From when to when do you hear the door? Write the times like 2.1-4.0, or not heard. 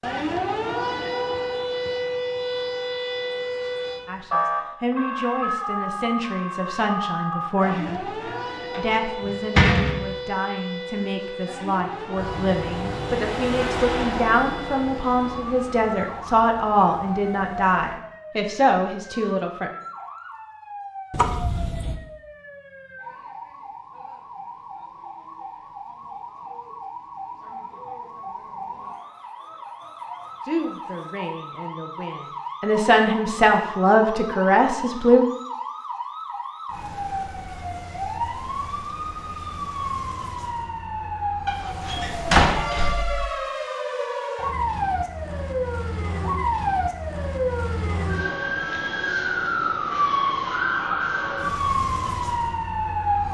8.2-10.2, 21.1-21.9, 41.5-43.2.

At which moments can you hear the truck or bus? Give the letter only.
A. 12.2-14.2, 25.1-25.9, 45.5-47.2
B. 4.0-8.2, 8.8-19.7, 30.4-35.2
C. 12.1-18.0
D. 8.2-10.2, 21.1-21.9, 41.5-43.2
C.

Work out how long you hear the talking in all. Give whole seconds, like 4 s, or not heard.
20 s.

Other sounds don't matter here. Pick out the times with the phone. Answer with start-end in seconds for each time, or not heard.
not heard.